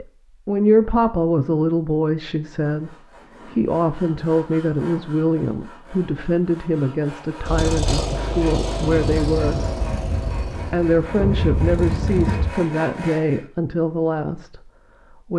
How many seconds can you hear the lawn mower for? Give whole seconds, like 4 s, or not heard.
5 s.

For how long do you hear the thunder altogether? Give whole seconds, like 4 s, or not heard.
4 s.